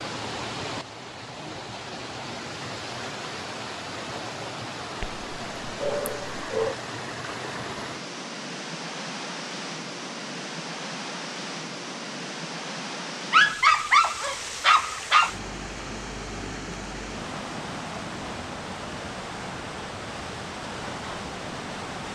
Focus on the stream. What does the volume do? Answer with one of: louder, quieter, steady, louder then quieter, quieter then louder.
steady.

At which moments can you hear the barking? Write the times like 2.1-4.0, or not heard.
5.0-6.8, 13.3-15.3.